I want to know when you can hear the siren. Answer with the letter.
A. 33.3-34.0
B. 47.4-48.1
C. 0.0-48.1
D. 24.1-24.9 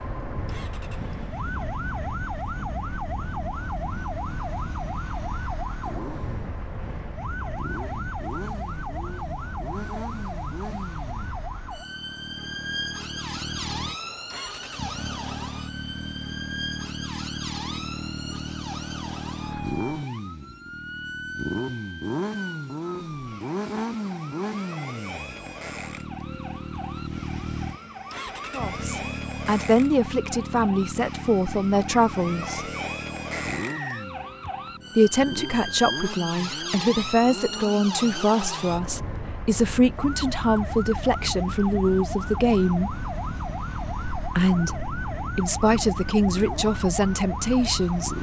C.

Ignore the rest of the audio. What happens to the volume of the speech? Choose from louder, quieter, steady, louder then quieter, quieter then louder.
steady.